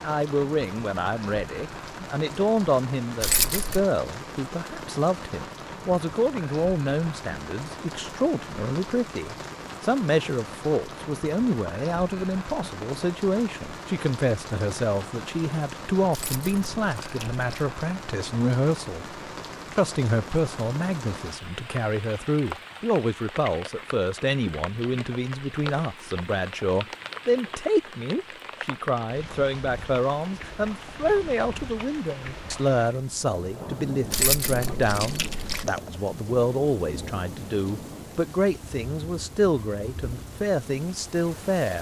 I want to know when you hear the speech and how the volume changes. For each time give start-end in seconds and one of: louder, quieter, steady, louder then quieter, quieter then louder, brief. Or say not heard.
0.0-19.1 steady
19.7-41.7 steady.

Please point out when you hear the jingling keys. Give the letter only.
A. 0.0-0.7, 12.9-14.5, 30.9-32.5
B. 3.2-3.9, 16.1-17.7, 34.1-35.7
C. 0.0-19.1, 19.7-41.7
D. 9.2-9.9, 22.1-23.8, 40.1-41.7
B.